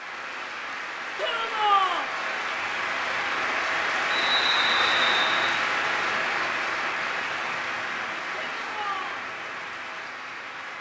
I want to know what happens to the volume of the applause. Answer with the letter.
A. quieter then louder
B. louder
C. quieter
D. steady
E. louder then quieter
E.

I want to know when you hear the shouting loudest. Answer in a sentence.
The loudest moment of the shouting is at 2 seconds.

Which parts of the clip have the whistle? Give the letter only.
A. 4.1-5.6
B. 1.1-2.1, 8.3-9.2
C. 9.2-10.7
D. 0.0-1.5
A.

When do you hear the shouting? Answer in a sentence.
You can hear the shouting from 1.1 to 2.1 s and from 8.3 to 9.2 s.